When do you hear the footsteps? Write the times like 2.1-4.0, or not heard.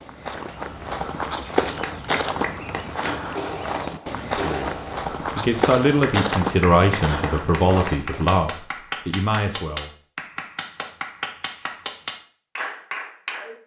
0.0-8.4.